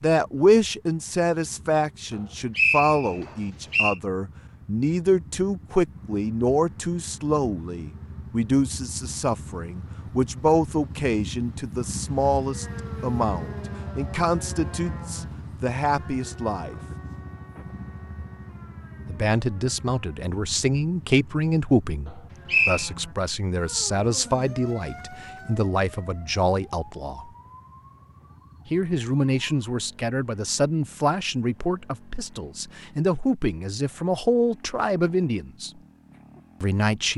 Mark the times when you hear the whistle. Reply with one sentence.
You can hear the whistle from 2.5 to 4.0 s and from 22.4 to 22.9 s.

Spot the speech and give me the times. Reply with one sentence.
You can hear the speech from 0.0 to 16.8 s, from 19.1 to 27.3 s, from 28.7 to 35.7 s and from 36.6 to 37.1 s.